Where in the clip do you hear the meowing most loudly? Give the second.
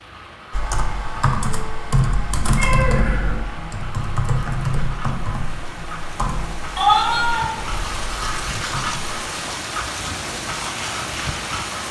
7 s.